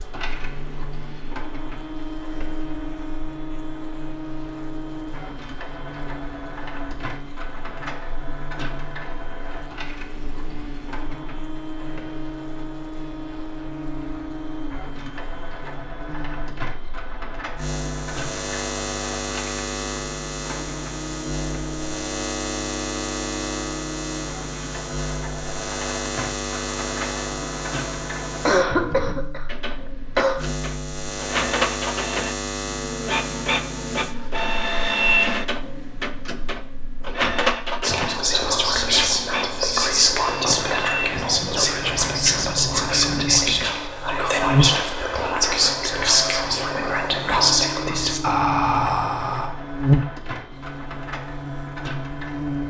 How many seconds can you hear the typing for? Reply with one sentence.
You can't hear the typing here.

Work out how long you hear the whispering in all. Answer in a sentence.
You can hear the whispering for 12 seconds altogether.